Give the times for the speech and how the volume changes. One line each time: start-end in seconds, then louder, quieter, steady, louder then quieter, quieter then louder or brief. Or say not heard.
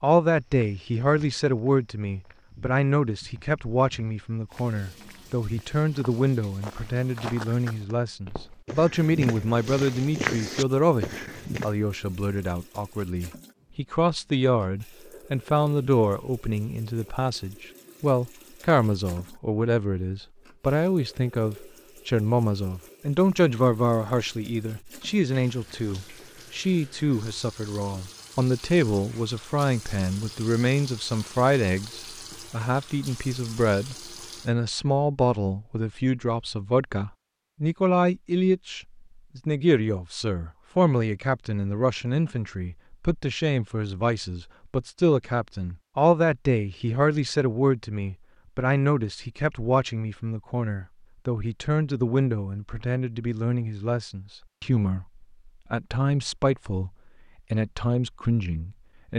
0.0-56.9 steady
57.5-59.1 brief.